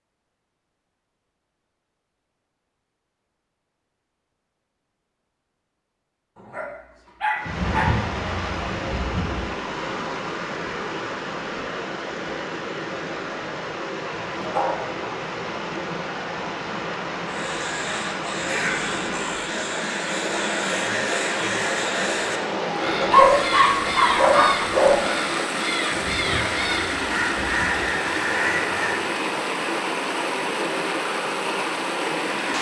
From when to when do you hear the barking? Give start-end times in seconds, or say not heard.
6.5-7.9, 14.3-14.8, 23.0-25.0.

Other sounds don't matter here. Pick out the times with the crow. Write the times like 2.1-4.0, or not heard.
17.2-29.1.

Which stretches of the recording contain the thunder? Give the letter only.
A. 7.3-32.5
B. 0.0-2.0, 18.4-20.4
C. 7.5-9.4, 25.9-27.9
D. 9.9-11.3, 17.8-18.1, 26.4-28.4
C.